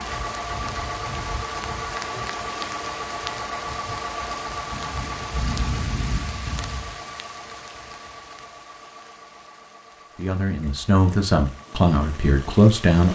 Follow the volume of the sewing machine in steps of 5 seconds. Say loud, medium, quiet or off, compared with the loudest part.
loud, medium, quiet.